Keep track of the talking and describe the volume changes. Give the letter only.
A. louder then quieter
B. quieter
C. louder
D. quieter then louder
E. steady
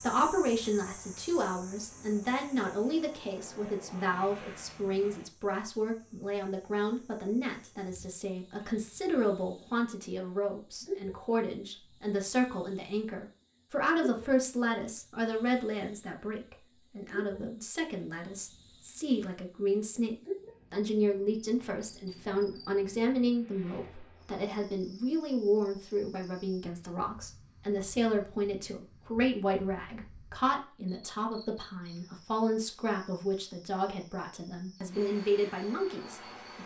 E.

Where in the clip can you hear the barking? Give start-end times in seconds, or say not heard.
not heard.